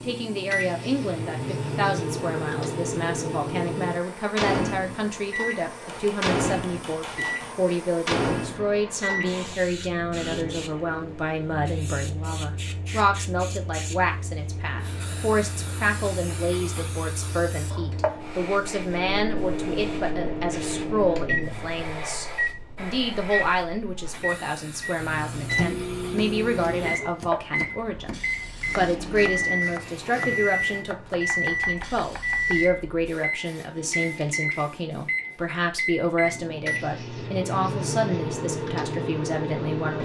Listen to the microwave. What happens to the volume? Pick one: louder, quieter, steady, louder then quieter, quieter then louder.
quieter then louder.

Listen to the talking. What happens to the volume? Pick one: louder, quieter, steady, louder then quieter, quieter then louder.
steady.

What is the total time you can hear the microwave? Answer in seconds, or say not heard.
40 s.